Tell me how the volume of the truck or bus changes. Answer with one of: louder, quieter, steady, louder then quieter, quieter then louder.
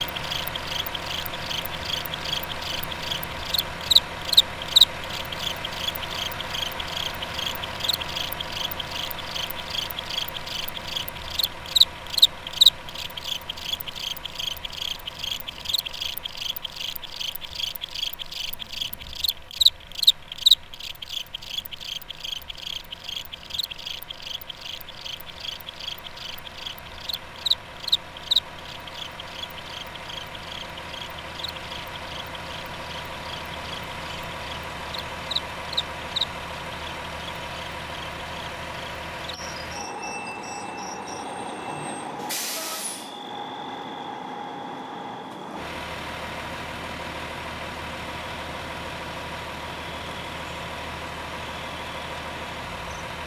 quieter then louder.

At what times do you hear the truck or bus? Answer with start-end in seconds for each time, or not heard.
0.0-53.2.